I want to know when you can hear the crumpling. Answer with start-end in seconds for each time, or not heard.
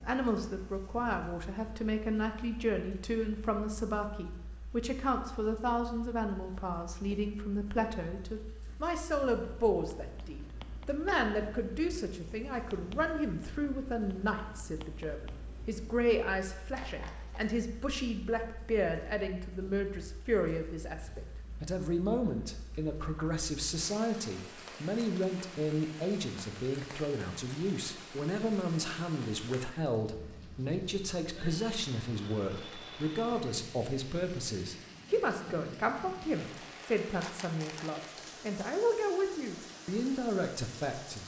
16.8-17.4, 36.5-38.4.